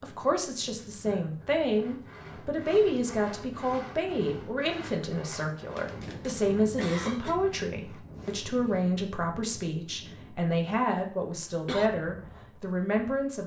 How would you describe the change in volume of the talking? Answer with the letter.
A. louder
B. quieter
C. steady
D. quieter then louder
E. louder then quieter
C.